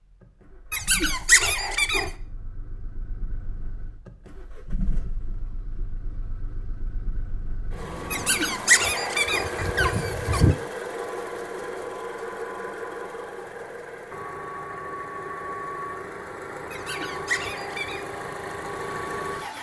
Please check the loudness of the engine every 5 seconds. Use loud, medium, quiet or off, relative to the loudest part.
medium, loud, loud, loud.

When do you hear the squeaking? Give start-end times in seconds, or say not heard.
0.7-2.1, 8.1-10.6, 16.7-18.1.